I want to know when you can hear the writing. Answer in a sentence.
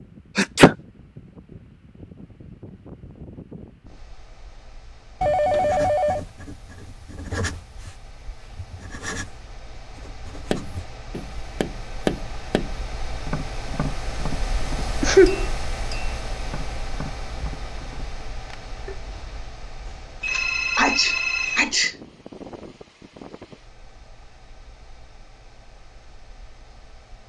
You can hear the writing from 5.5 to 10.9 s.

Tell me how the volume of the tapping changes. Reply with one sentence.
The volume of the tapping goes down.